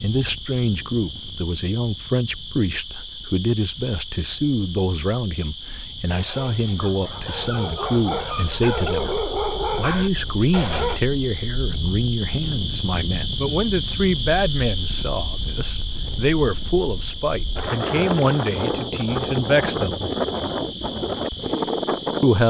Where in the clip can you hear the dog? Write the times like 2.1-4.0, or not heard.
6.0-11.0.